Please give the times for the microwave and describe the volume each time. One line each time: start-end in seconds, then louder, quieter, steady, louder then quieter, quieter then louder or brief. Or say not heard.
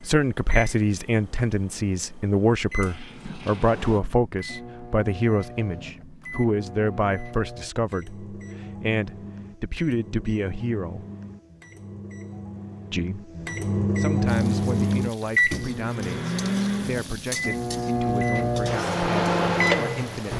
0.0-20.3 louder.